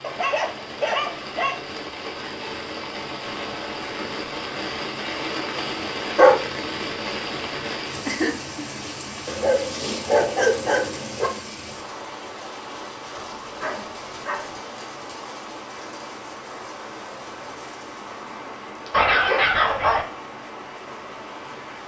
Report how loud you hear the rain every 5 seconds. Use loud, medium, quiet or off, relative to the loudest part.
loud, loud, medium, medium, medium.